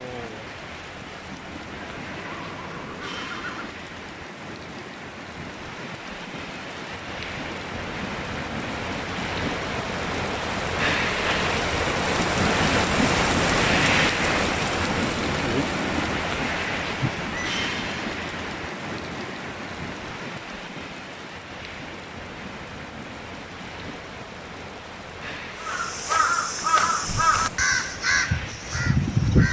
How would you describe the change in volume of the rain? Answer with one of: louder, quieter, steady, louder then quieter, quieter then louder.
louder then quieter.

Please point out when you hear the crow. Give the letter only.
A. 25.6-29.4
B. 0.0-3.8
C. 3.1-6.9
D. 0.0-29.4
A.